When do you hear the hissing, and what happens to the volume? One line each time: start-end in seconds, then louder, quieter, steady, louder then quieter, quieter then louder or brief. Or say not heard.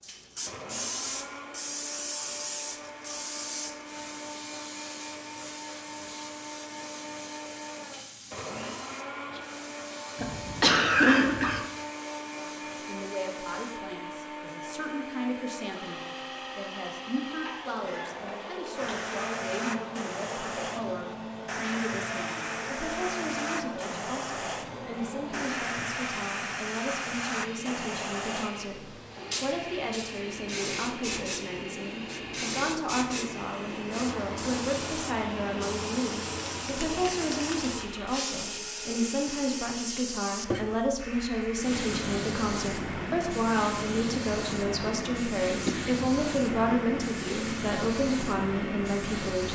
0.0-13.8 quieter
18.7-49.4 steady.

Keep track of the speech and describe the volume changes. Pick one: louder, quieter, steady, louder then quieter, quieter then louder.
louder.